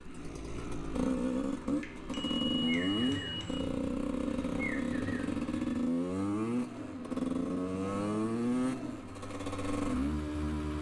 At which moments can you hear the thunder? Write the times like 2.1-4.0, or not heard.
not heard.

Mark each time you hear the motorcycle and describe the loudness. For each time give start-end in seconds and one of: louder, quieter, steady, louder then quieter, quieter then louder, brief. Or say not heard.
0.0-10.7 steady.